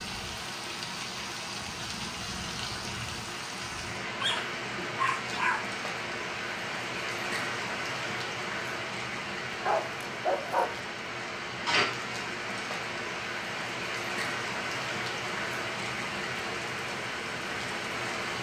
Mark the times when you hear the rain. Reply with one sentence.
The rain can be heard from 0.0 to 18.3 s.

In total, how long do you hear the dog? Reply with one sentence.
The dog can be heard for 3 seconds in total.